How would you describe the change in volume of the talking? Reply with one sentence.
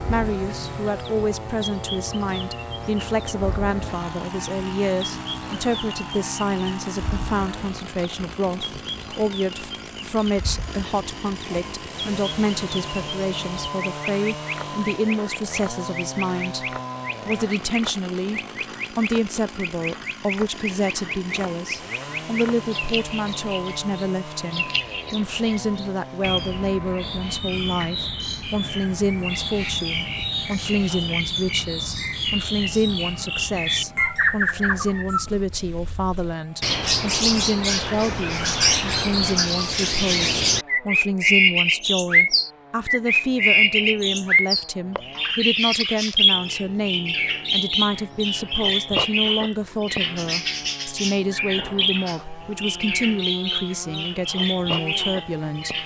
The volume of the talking stays about the same.